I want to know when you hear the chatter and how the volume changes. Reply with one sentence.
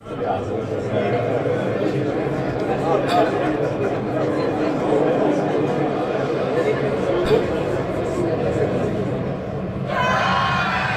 You can hear the chatter from 0.0 to 10.9 s, at a steady volume.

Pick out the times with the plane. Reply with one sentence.
You can hear the plane from 2.0 to 10.9 s.